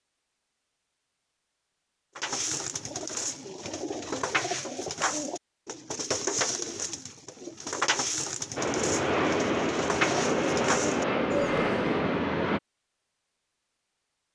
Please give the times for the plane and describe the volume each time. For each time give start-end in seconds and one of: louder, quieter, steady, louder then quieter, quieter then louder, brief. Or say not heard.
8.6-12.6 steady.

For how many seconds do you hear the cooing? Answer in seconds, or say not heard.
10 s.